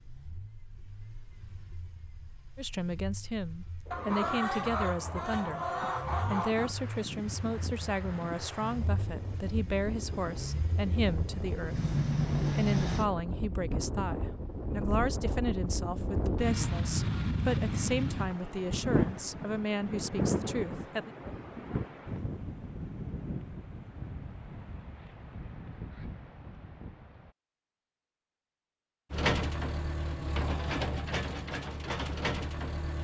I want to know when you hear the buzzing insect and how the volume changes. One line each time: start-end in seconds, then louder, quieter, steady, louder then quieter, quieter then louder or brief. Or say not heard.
not heard.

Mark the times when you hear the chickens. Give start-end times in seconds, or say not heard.
3.9-6.8.